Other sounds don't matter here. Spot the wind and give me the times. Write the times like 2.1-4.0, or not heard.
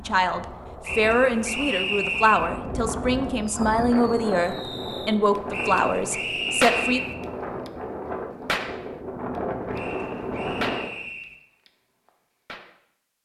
0.0-11.0.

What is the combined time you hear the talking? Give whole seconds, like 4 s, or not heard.
7 s.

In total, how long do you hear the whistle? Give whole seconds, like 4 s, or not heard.
5 s.